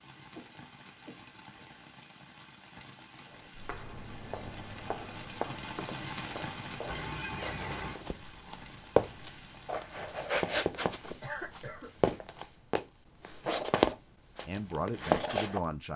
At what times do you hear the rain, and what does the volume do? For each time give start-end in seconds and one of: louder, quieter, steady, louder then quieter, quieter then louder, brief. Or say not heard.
0.0-10.2 louder then quieter.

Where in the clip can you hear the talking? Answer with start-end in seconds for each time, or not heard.
14.4-15.9.